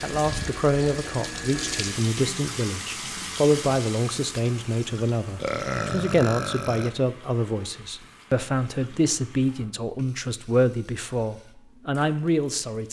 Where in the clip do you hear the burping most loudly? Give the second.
6 s.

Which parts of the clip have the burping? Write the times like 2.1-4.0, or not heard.
5.3-7.0.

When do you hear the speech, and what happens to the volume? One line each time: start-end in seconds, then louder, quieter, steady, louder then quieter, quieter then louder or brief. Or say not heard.
0.0-12.8 steady.